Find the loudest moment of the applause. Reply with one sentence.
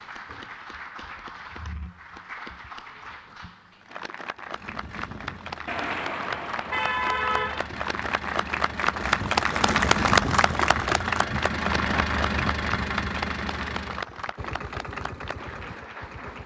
The volume of the applause peaks at 10 seconds.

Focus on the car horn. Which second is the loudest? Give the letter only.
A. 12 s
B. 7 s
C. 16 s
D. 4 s
B.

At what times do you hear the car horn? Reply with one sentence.
The car horn can be heard from 5.7 to 7.7 s.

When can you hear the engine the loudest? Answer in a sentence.
The volume of the engine peaks at 12 seconds.